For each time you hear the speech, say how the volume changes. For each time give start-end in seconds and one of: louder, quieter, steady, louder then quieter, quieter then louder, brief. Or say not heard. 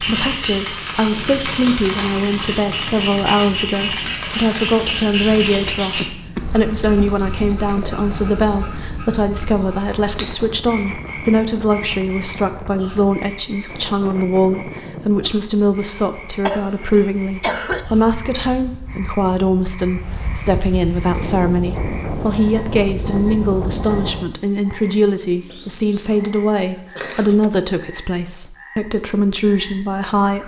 0.0-30.4 steady.